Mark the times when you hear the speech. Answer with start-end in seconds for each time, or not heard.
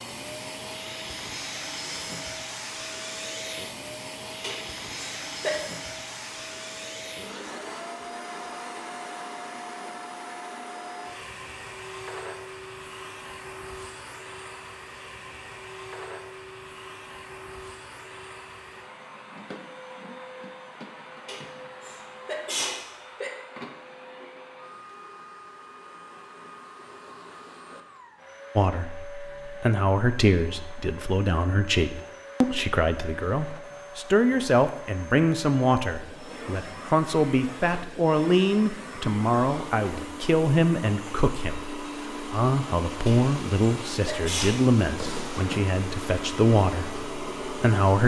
28.6-48.0.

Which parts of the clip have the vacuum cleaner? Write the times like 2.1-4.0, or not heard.
0.0-48.0.